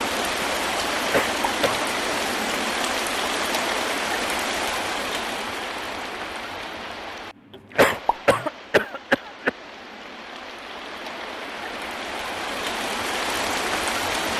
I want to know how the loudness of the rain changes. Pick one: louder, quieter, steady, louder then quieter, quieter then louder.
quieter then louder.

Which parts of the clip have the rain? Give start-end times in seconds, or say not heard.
0.0-14.3.